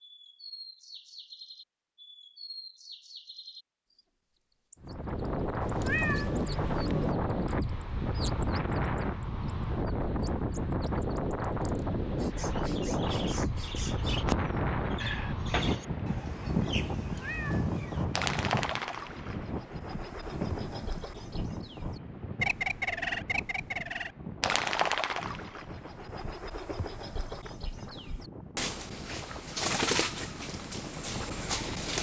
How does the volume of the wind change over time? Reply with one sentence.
The loudness of the wind goes down.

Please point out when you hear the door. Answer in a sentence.
The door can be heard from 15.0 to 16.1 s.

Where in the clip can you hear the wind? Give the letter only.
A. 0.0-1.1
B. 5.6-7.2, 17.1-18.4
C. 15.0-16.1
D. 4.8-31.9
D.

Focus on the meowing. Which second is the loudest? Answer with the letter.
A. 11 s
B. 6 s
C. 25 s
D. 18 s
B.